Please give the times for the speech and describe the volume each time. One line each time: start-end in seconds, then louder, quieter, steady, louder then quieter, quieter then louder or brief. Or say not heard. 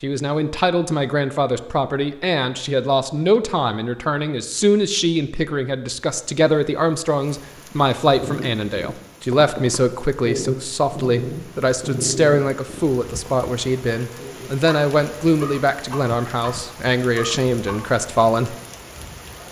0.0-18.6 steady.